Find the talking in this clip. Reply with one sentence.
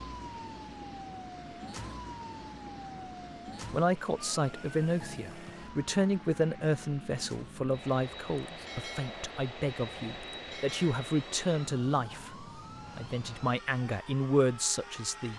You can hear the talking from 3.6 to 15.3 s.